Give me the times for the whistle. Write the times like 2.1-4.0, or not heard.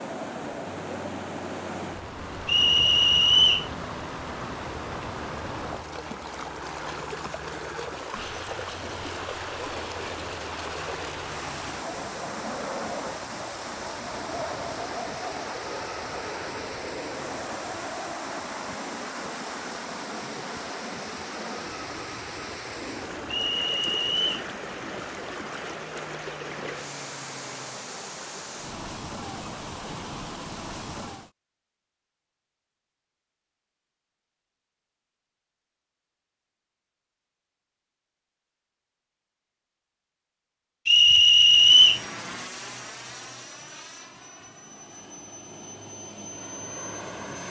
2.5-3.7, 23.3-24.4, 40.9-42.0.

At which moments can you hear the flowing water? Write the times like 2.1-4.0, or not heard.
0.0-31.3.